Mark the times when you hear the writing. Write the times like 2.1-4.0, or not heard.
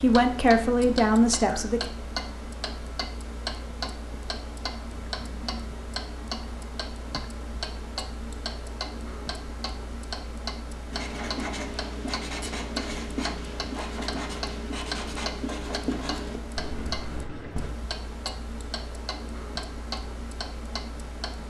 10.9-17.8.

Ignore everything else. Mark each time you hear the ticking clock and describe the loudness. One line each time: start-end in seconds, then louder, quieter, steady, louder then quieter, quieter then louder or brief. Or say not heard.
0.0-21.4 steady.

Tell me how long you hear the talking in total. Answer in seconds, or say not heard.
2 s.